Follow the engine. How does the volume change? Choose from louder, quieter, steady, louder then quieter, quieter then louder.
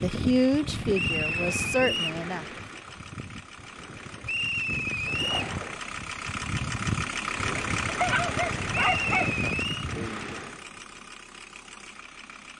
louder then quieter.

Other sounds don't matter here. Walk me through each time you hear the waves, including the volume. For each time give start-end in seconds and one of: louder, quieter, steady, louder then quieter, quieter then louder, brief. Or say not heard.
0.0-10.7 quieter then louder.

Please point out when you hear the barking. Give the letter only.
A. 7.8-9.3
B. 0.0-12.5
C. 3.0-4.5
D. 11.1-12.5
A.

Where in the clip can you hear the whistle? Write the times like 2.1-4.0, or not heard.
0.9-2.2, 4.2-5.5, 8.7-9.9.